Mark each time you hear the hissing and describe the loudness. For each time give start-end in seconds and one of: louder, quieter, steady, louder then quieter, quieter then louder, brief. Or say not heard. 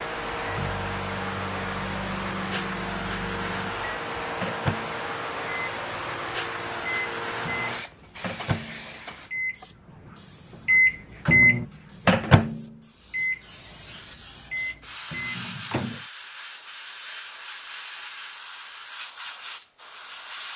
0.0-20.5 quieter then louder.